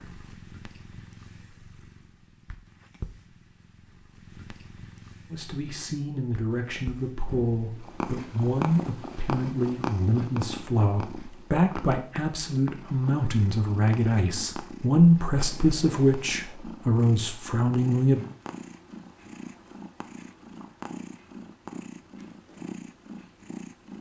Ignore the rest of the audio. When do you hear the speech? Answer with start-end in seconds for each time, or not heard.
5.3-18.2.